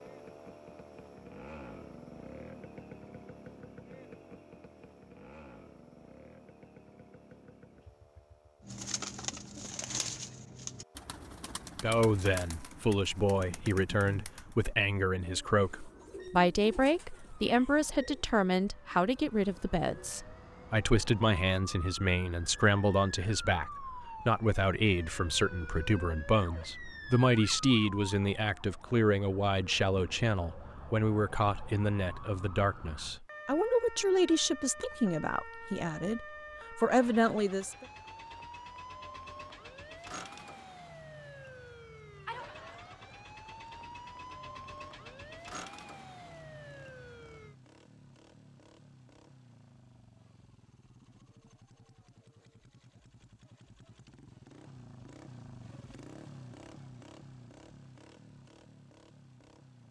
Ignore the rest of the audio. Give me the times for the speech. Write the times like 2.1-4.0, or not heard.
11.8-37.9.